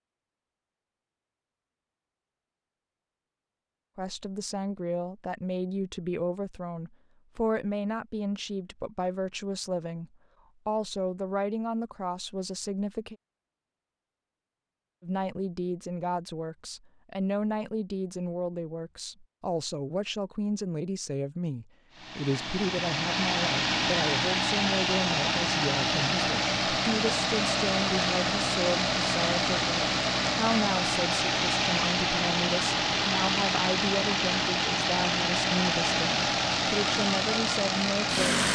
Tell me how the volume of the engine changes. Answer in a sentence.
The volume of the engine stays about the same.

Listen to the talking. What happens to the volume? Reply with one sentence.
The volume of the talking stays about the same.